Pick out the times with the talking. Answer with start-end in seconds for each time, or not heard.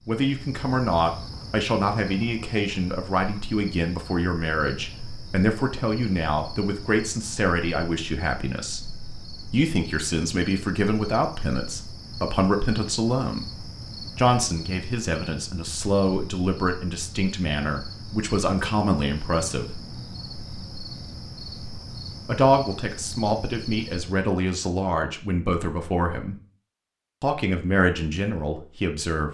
0.1-8.9, 9.5-13.4, 14.2-19.8, 22.2-26.4, 27.2-29.2.